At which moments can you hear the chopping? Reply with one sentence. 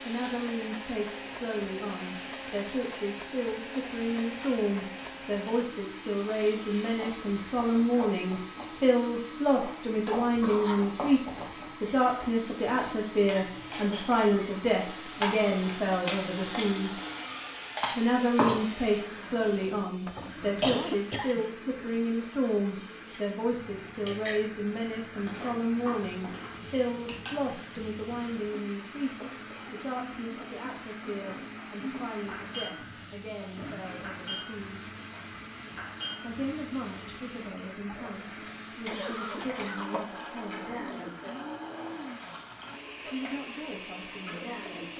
The chopping can't be heard in this clip.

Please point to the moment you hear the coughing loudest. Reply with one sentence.
The loudest moment of the coughing is at 21 seconds.